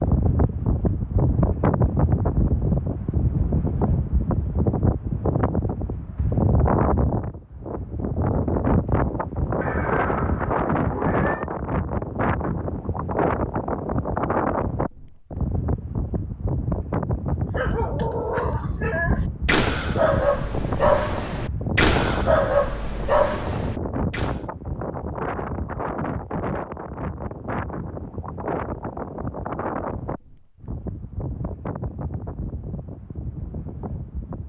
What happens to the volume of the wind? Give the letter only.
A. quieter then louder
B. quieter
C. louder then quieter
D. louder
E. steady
B.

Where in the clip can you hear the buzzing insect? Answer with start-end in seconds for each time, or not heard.
not heard.